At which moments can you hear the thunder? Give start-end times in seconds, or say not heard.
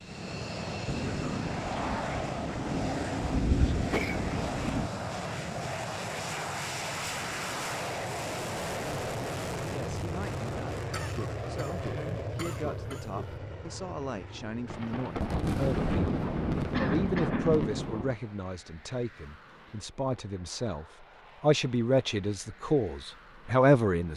0.8-4.9, 14.7-18.2.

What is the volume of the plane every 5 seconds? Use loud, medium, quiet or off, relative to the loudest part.
loud, loud, loud, quiet, quiet.